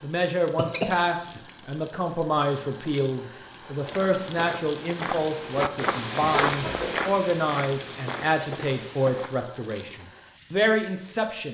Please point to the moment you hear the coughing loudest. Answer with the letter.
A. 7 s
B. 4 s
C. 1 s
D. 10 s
C.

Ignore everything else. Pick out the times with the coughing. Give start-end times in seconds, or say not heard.
0.6-1.4, 6.2-7.0.